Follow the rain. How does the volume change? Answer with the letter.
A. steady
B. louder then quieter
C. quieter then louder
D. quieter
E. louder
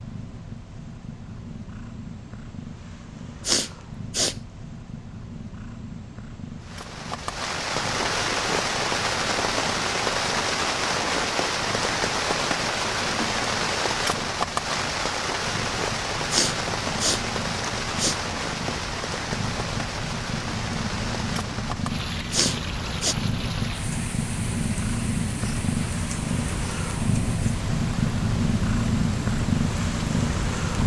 D.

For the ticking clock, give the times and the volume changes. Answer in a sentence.
The ticking clock can't be heard in this clip.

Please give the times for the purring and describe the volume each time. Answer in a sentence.
You can hear the purring from 0.0 to 30.8 s, getting louder.